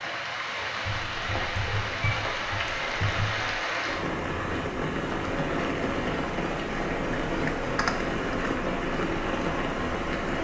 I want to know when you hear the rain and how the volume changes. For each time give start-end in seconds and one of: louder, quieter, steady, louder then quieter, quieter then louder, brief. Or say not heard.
0.0-10.3 steady.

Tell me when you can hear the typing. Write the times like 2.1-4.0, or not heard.
0.8-3.6, 7.3-8.5.